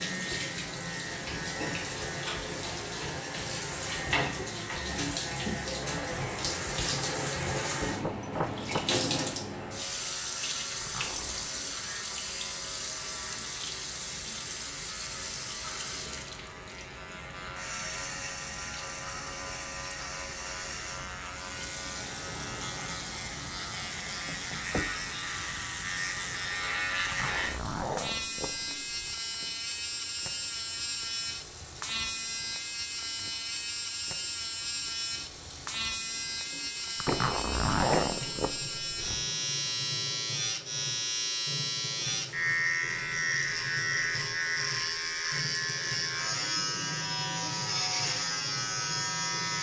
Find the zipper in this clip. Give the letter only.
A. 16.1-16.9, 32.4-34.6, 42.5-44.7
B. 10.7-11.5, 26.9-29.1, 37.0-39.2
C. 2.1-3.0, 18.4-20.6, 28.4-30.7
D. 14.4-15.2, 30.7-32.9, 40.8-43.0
B.